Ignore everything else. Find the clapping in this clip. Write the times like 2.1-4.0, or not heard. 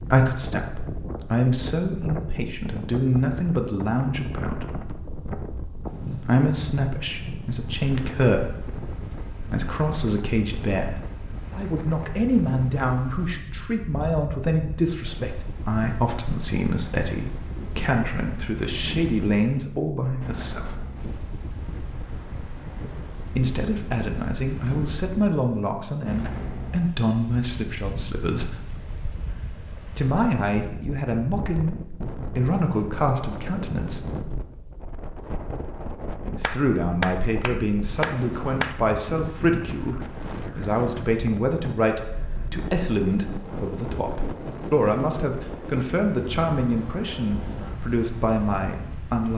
36.4-38.8.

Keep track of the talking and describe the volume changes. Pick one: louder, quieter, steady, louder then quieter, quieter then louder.
steady.